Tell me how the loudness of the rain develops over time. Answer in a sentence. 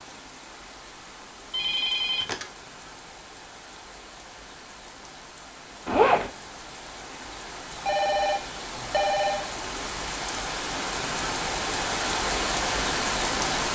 The volume of the rain goes up.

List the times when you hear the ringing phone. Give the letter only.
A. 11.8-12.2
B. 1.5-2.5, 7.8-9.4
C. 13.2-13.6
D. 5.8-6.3
B.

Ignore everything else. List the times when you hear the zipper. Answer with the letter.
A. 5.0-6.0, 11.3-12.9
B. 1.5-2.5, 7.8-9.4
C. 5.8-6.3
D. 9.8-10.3
C.